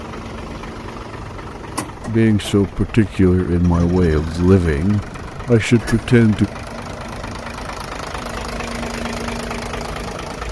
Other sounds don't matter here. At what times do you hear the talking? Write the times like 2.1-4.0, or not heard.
2.0-6.5.